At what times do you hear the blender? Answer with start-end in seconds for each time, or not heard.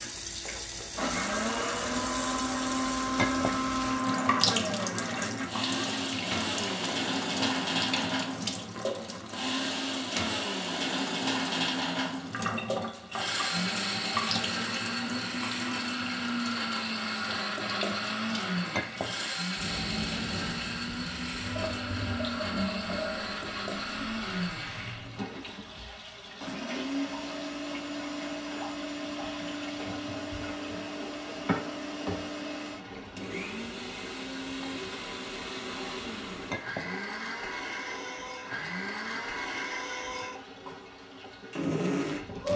0.0-42.5.